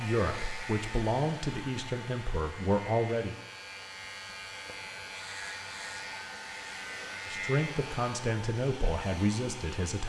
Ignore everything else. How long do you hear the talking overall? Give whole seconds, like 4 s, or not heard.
6 s.